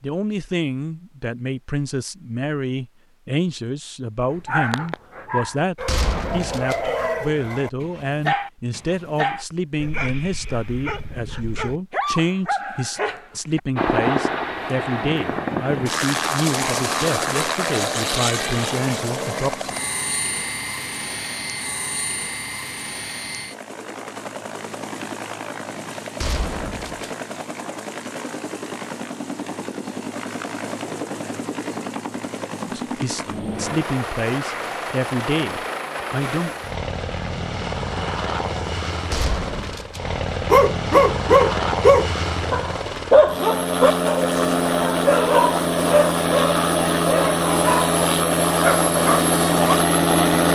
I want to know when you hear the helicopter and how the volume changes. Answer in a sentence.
The helicopter can be heard from 13.8 to 50.4 s, getting quieter then louder.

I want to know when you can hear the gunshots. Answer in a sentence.
The gunshots can be heard from 5.8 to 6.8 s, from 26.2 to 27.1 s and from 39.1 to 40.0 s.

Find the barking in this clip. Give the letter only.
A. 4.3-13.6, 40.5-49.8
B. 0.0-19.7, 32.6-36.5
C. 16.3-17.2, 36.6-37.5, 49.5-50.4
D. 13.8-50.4
A.